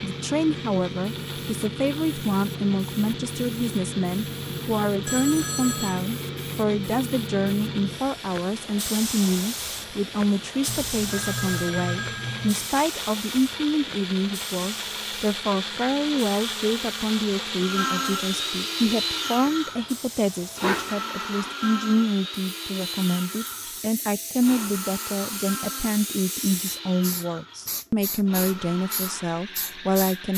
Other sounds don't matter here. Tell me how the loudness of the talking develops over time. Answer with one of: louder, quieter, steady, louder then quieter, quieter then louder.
steady.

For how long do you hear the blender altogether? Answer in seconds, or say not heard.
30 s.